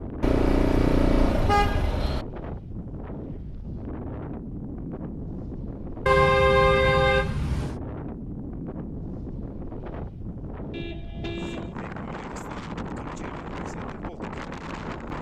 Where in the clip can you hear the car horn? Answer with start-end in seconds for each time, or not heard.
0.2-2.2, 6.0-7.8, 10.7-11.8.